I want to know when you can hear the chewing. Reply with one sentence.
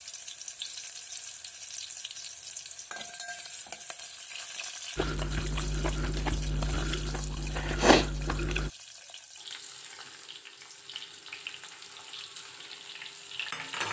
You can hear the chewing from 5.0 to 8.7 s.